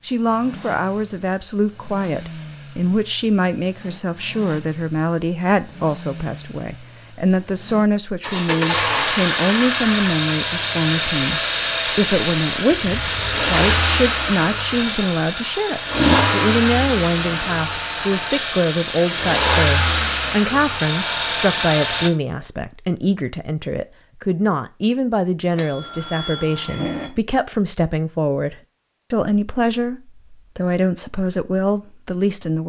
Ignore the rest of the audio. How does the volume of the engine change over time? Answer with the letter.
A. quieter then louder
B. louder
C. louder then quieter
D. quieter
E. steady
B.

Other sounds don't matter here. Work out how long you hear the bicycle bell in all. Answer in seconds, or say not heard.
3 s.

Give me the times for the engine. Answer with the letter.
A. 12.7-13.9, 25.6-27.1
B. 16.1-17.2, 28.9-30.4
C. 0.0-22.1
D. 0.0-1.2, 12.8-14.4
C.